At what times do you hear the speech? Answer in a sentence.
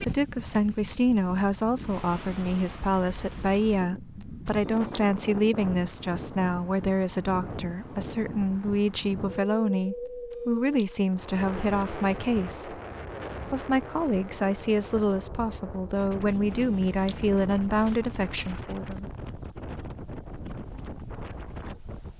You can hear the speech from 0.0 to 12.8 s and from 13.5 to 19.1 s.